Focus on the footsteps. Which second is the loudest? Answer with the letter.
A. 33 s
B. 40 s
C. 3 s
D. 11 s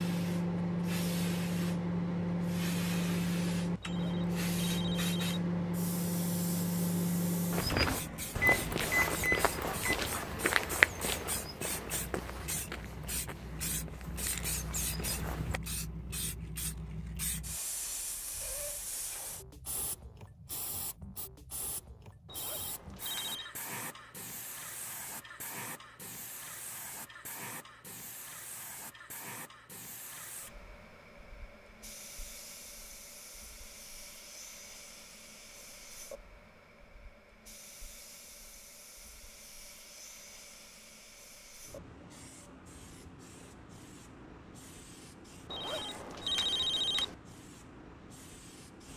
D.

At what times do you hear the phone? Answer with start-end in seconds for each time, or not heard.
3.8-5.2, 22.2-23.5, 45.5-47.1.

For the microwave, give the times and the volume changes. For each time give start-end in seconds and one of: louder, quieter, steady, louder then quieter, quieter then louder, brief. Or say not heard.
0.0-9.9 quieter.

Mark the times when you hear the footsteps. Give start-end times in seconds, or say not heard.
7.5-15.6.